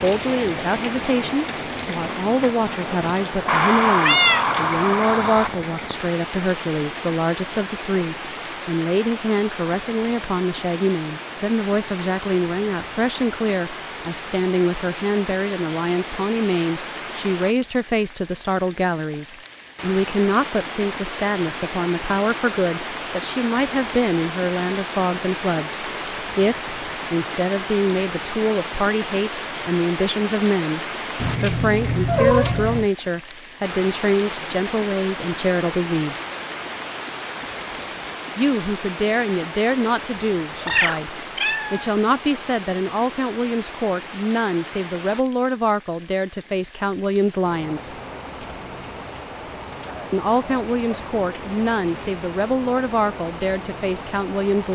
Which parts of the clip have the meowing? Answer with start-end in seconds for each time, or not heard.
3.5-5.5, 31.2-32.9, 40.6-41.9.